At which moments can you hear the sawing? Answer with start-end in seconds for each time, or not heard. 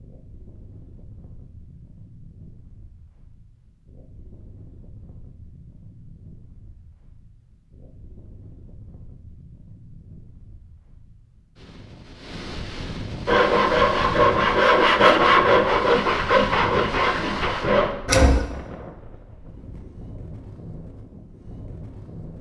13.2-18.4.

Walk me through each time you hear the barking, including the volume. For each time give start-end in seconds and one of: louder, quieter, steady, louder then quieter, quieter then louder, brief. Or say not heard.
not heard.